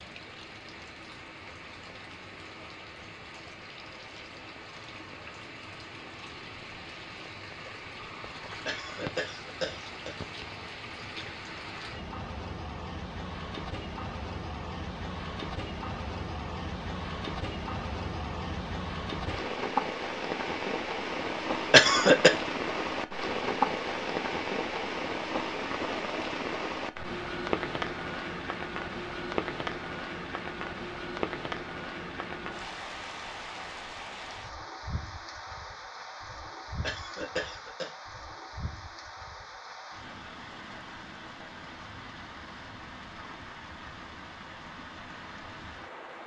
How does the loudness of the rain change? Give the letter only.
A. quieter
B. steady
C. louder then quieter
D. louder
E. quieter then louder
C.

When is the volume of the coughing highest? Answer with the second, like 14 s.
22 s.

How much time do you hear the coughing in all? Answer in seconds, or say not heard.
3 s.